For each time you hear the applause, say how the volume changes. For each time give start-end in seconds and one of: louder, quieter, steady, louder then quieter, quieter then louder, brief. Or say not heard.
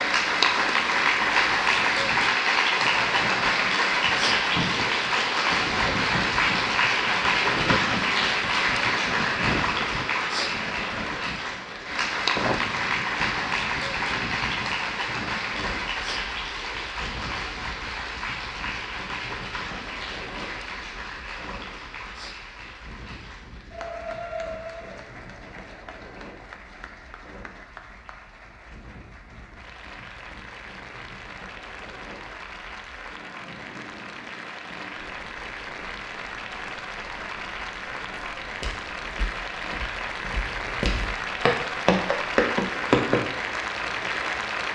0.0-44.7 quieter then louder.